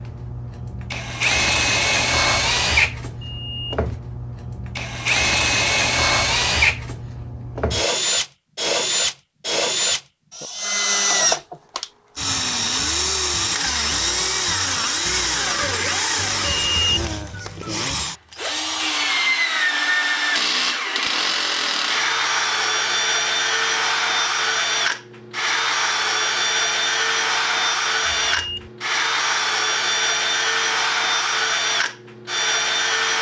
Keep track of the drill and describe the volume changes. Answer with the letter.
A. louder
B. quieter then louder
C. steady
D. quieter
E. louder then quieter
C.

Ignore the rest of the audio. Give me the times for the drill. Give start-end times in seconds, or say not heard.
0.0-33.1.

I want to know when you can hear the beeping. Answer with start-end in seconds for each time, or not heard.
3.2-3.9, 16.4-16.9, 28.1-28.7.